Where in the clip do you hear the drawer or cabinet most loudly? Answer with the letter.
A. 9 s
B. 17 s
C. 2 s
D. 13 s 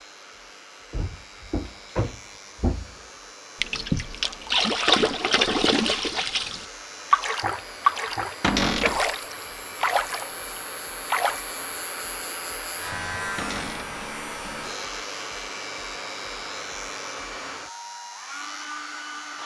A.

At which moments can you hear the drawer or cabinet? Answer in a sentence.
The drawer or cabinet can be heard from 0.9 to 3.0 s, from 8.4 to 9.0 s and from 13.3 to 13.9 s.